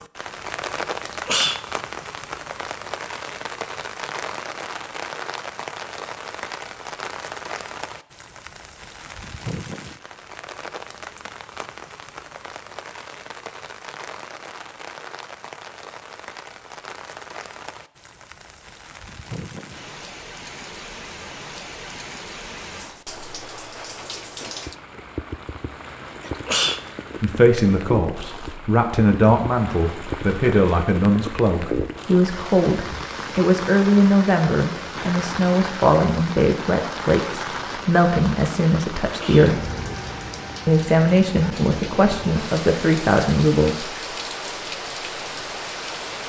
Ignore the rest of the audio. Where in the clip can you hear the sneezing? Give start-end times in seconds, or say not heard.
1.1-1.6, 26.2-26.8, 39.0-39.5.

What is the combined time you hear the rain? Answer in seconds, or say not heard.
46 s.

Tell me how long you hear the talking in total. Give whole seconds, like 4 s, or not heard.
16 s.